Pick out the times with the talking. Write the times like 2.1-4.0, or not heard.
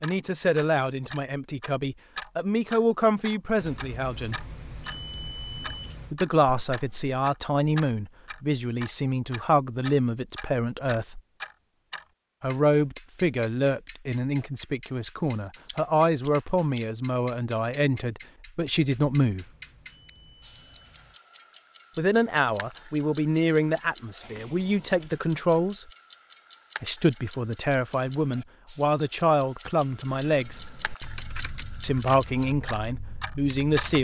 0.0-4.5, 6.1-11.2, 12.4-19.4, 21.9-25.9, 26.8-30.6, 31.8-33.9.